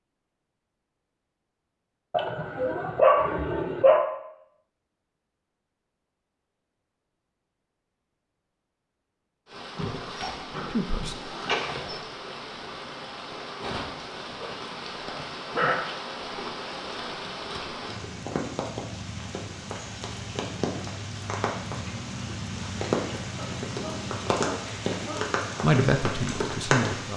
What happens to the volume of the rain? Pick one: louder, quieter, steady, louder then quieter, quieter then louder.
louder.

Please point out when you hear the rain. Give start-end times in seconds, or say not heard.
9.4-27.1.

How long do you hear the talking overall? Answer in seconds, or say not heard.
3 s.